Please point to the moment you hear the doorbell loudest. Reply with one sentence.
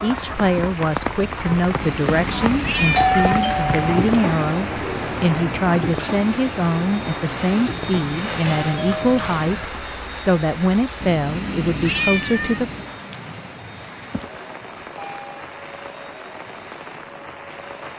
The volume of the doorbell peaks at 3 seconds.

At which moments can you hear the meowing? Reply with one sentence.
You can hear the meowing from 1.8 to 3.5 s and from 11.0 to 12.9 s.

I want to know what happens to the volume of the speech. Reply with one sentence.
The volume of the speech stays about the same.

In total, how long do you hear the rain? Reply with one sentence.
You can hear the rain for 18 seconds altogether.